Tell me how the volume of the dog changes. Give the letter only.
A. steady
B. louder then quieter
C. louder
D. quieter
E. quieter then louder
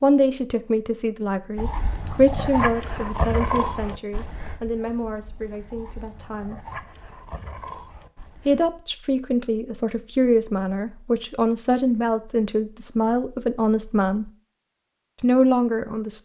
E.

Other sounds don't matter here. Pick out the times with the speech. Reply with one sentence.
The speech can be heard from 0.0 to 6.7 s, from 8.3 to 14.3 s and from 15.2 to 16.1 s.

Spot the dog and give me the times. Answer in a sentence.
The dog can be heard from 1.6 to 8.7 s.